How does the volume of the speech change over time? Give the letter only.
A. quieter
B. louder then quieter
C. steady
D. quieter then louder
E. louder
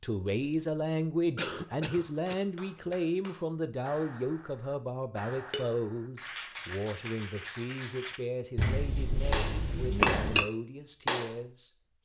A.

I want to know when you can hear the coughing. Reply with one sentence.
The coughing can be heard from 1.4 to 2.5 s.